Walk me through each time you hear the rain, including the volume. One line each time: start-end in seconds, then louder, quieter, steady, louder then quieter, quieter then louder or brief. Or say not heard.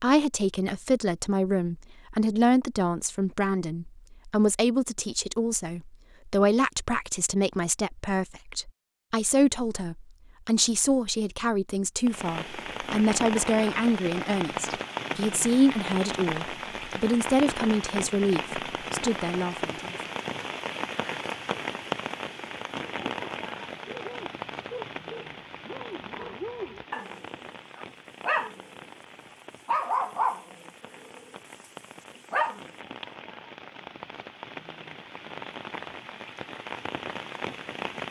12.1-38.0 quieter then louder.